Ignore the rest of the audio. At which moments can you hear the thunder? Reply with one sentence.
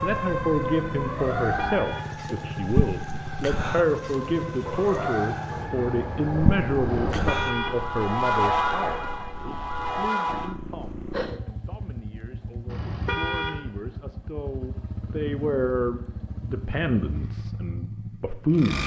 The thunder can be heard from 4.6 to 7.3 s.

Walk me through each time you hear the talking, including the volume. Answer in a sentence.
You can hear the talking from 0.0 to 18.8 s, getting quieter then louder.